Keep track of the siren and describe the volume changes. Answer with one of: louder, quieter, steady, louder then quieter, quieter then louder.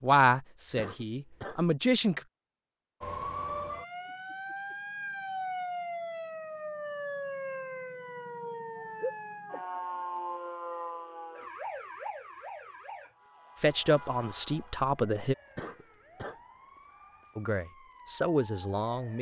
quieter.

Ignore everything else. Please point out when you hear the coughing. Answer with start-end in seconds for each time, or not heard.
0.8-1.6, 15.6-16.4.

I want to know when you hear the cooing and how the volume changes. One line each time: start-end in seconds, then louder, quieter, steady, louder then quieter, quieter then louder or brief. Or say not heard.
not heard.